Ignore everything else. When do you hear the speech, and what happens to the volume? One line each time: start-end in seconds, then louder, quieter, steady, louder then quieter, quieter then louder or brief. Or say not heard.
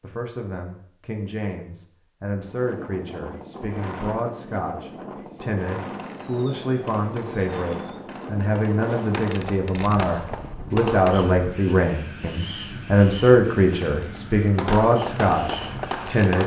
0.0-16.4 louder.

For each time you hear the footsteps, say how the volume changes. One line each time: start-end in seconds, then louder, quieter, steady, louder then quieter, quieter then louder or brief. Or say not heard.
not heard.